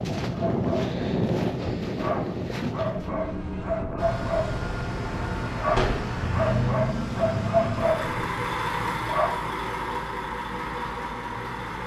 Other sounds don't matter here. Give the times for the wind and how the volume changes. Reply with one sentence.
The wind can be heard from 0.0 to 8.3 s, getting quieter.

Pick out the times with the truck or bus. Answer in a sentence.
You can hear the truck or bus from 4.0 to 11.8 s.